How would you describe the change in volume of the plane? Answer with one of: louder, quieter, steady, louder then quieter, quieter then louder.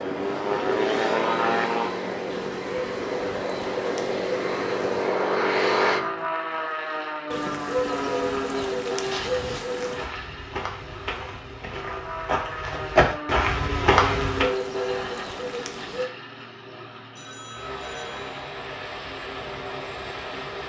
quieter.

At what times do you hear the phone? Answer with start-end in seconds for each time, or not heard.
17.1-18.4.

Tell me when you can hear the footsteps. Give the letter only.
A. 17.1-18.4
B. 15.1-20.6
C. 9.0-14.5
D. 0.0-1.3
C.